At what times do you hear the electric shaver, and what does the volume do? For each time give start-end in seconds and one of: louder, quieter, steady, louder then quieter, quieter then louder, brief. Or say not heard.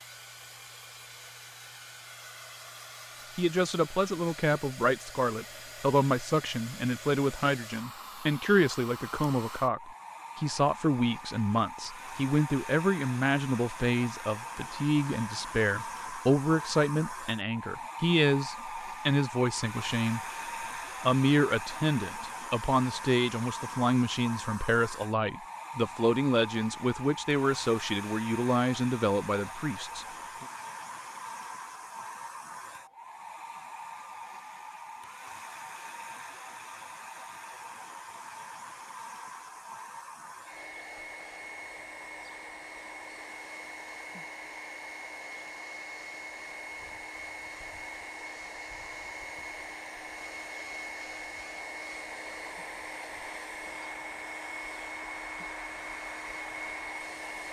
not heard.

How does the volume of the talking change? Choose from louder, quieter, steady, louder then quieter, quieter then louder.
steady.